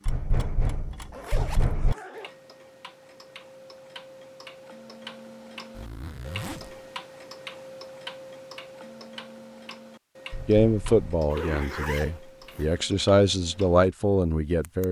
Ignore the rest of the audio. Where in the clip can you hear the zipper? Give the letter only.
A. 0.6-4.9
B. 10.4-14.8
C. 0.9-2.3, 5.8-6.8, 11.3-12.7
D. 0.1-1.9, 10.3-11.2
C.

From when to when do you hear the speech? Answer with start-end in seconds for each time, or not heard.
10.4-14.8.